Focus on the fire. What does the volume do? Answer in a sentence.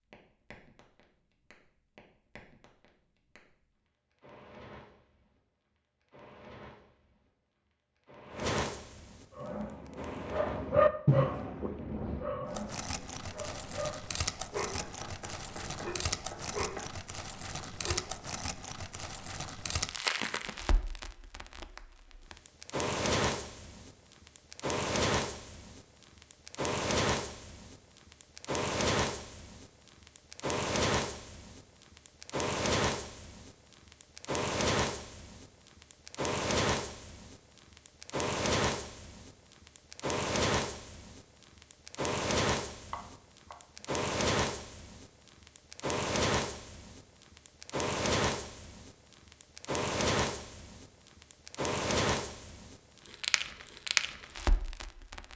The volume of the fire goes up.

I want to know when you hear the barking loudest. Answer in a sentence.
The loudest moment of the barking is at 11 seconds.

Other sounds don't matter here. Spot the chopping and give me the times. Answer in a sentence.
You can hear the chopping from 14.7 to 16.9 s and from 42.9 to 43.6 s.